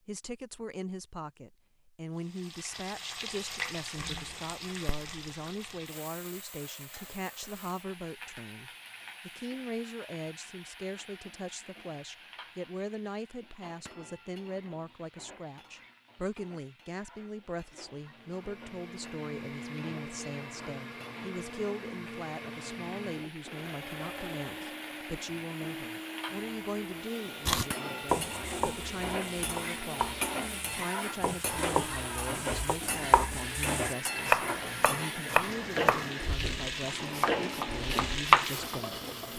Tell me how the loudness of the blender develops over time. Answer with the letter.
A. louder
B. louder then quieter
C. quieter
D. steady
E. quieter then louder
D.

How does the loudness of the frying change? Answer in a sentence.
The volume of the frying goes down, then up.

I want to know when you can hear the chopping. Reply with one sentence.
You can hear the chopping from 27.4 to 39.1 s.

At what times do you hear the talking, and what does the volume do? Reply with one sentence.
The talking can be heard from 0.1 to 39.3 s, at a steady volume.